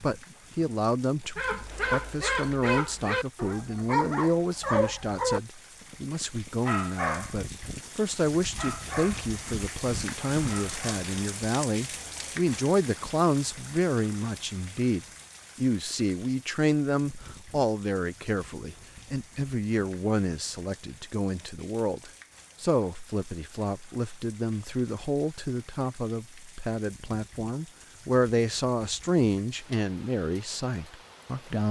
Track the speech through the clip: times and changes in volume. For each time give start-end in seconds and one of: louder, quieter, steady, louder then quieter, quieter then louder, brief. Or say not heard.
0.0-31.6 steady.